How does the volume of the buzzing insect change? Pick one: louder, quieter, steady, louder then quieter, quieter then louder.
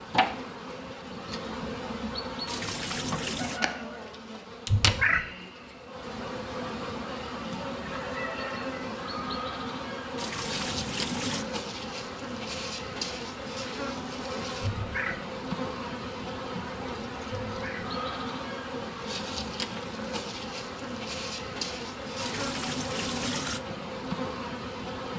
steady.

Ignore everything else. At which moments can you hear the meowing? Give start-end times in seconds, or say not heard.
4.7-5.2, 14.6-15.2, 17.4-17.9.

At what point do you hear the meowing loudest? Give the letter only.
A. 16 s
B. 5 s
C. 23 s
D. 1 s
B.